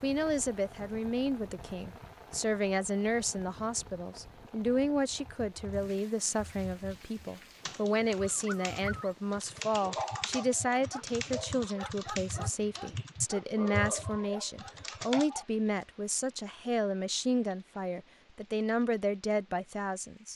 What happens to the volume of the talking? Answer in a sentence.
The volume of the talking stays about the same.